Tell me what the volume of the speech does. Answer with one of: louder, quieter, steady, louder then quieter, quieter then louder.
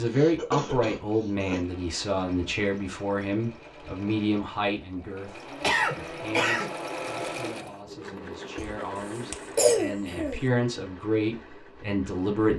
quieter then louder.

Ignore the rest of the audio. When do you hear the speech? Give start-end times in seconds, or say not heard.
0.0-12.5.